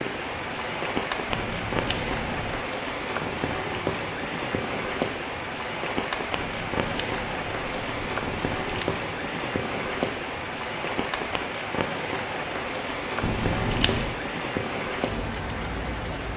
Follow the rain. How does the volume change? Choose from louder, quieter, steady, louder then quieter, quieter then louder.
steady.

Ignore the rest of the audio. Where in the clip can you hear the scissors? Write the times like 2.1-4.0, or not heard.
1.2-2.6, 6.3-8.9, 13.2-14.2.